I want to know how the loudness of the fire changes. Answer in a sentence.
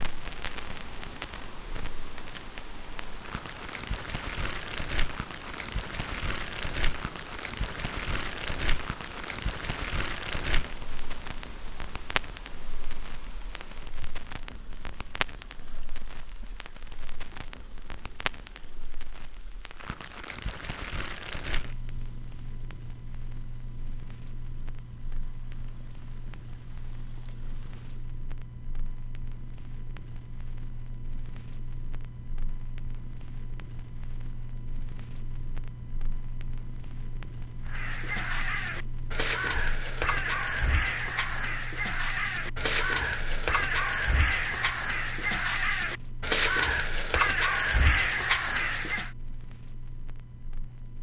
The volume of the fire goes down.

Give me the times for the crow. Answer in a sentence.
The crow can be heard from 37.6 to 49.1 s.